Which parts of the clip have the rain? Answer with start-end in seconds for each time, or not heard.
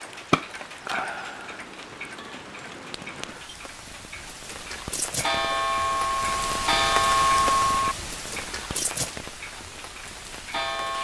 0.0-10.9.